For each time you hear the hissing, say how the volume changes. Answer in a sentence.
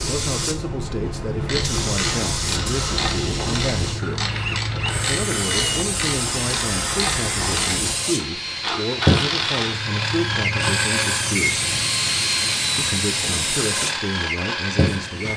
The hissing can be heard from 0.0 to 15.3 s, at a steady volume.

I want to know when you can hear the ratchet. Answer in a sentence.
You can hear the ratchet from 1.4 to 9.8 s.